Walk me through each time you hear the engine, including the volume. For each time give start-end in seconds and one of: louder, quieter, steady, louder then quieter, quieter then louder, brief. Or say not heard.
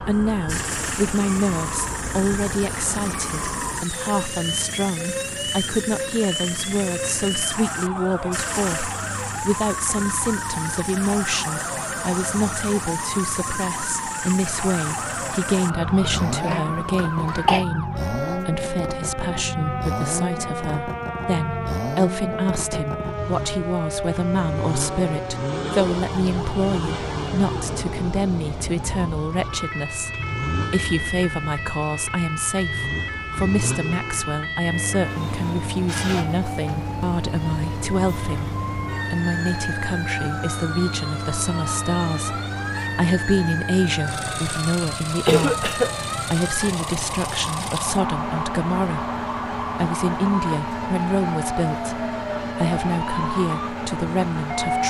0.0-54.8 steady.